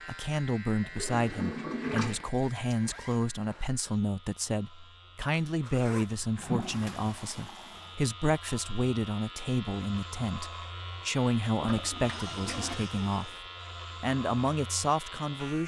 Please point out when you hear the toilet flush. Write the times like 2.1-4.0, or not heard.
0.8-2.2, 6.3-8.0, 11.6-12.8.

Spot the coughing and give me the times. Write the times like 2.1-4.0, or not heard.
not heard.